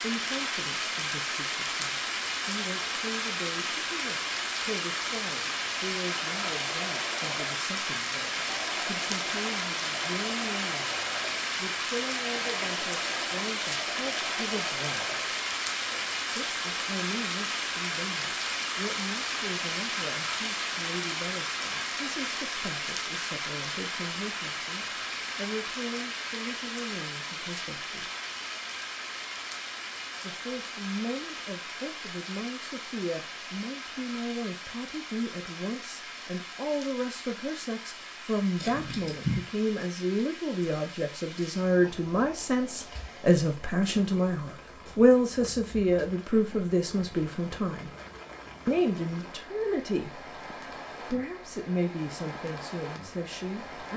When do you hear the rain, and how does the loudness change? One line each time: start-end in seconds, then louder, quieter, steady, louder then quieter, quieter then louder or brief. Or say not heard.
0.0-53.9 quieter.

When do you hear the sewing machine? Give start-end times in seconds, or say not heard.
6.0-16.2.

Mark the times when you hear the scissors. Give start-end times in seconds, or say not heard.
38.5-39.5.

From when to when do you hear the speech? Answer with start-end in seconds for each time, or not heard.
0.0-15.2, 16.3-28.1, 30.2-47.9, 48.6-50.2, 51.0-53.9.